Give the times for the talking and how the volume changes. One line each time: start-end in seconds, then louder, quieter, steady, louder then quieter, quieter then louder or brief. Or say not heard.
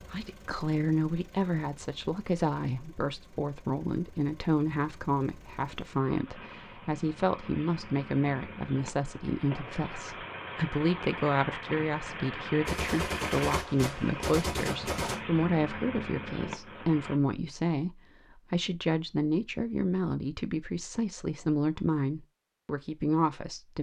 0.1-23.7 steady.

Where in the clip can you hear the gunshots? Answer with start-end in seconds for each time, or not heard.
12.7-15.2.